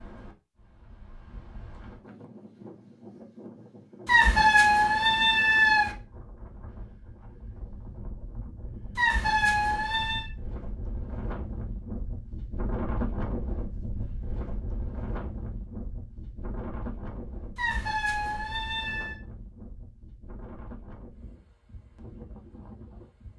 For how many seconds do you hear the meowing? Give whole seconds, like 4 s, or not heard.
5 s.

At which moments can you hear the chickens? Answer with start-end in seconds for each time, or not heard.
not heard.